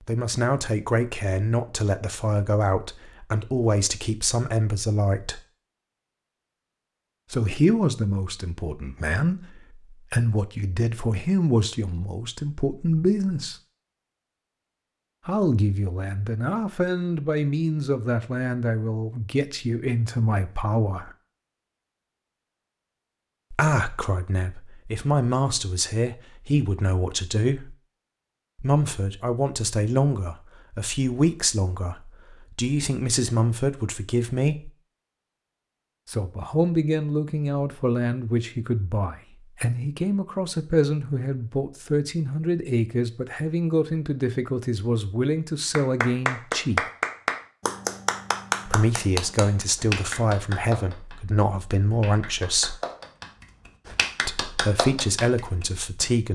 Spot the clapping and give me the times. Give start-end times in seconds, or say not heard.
45.7-56.1.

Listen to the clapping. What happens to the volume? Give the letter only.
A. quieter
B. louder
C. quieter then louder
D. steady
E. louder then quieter
C.